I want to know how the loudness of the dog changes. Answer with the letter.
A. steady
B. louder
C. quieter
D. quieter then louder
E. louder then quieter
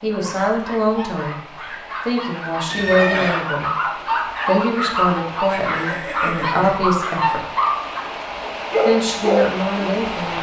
B.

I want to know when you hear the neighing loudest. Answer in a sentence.
The volume of the neighing peaks at 3 seconds.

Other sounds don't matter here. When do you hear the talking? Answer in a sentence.
You can hear the talking from 0.0 to 1.4 s, from 2.0 to 3.8 s, from 4.5 to 7.4 s and from 8.8 to 10.3 s.